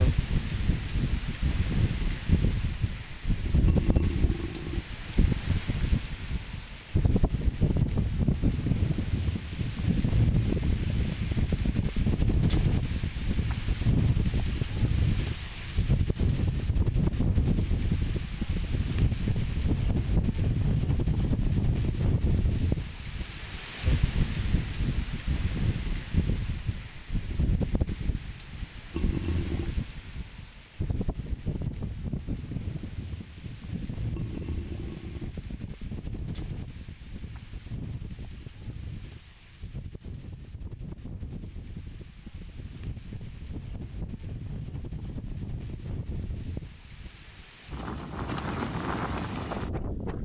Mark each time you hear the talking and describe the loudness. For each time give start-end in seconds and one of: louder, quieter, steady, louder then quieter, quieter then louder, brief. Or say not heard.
not heard.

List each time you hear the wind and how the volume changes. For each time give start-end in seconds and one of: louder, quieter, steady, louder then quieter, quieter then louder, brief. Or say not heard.
0.0-50.2 quieter.